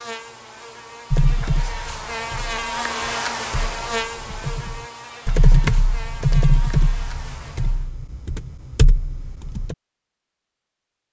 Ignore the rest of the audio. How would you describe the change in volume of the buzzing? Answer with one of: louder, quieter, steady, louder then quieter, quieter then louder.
louder then quieter.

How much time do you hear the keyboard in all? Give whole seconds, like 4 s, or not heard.
9 s.